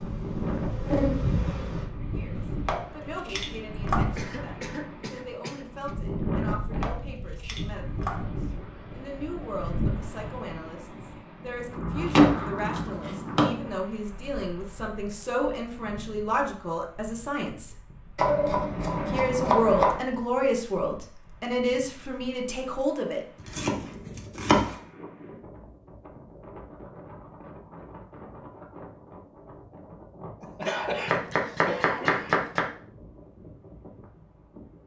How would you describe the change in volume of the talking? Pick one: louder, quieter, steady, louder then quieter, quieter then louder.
louder.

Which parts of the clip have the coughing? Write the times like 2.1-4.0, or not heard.
4.2-6.0, 30.4-32.4.